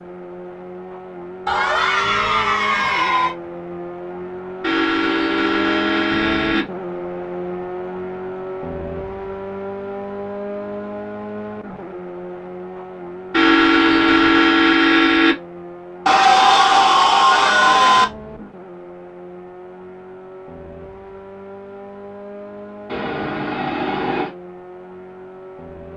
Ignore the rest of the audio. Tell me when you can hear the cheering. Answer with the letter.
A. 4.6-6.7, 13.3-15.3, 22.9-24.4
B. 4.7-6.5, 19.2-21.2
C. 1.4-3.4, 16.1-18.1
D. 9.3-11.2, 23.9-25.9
C.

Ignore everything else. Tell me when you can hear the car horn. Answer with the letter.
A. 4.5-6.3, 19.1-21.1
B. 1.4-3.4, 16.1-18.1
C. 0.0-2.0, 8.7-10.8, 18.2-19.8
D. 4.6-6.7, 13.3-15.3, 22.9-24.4
D.